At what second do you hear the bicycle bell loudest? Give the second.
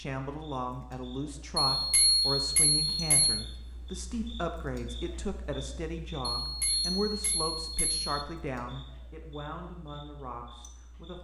2 s.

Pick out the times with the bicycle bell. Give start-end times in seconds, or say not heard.
1.7-3.5, 6.4-8.1.